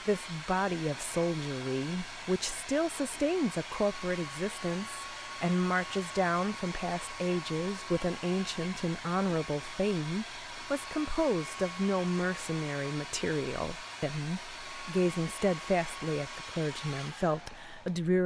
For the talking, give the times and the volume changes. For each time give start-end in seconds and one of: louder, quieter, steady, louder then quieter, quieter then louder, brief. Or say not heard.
0.1-18.2 steady.